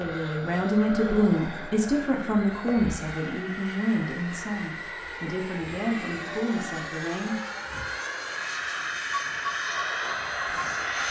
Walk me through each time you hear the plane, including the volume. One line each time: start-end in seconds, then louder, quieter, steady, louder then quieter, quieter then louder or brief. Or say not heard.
0.0-11.0 louder.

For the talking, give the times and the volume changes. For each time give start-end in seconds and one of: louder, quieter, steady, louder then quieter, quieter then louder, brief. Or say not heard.
0.0-7.4 quieter.